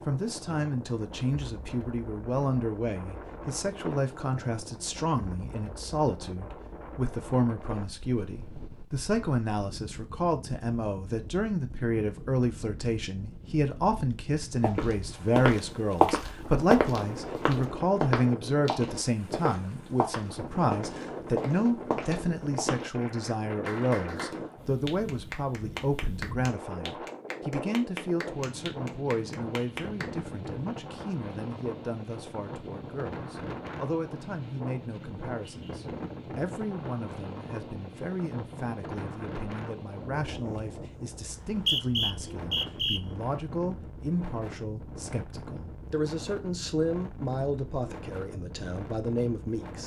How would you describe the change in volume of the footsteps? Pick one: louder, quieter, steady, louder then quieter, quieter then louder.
quieter.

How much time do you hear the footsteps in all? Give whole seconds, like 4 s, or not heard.
8 s.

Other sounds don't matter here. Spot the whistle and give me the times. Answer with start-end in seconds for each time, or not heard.
41.2-43.0.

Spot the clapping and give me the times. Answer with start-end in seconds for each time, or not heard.
23.6-30.1.